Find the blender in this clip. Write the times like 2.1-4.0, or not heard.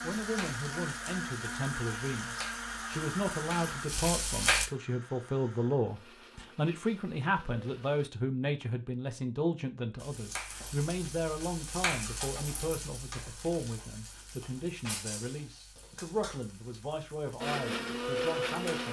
0.0-8.1, 17.4-18.8.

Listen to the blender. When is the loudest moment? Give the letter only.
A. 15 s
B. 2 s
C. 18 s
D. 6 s
C.